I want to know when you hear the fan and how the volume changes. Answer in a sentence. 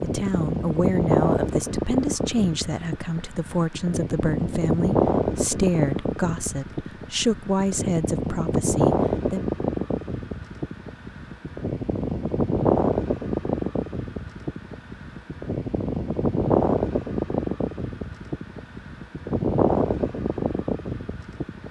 You can hear the fan from 0.0 to 21.6 s, at a steady volume.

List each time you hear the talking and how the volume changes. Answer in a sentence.
The talking can be heard from 0.0 to 9.4 s, at a steady volume.